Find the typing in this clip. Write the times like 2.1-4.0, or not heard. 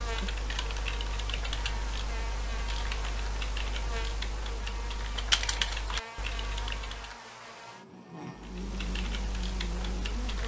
0.0-7.2, 8.3-10.4.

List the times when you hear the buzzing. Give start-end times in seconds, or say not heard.
0.0-10.4.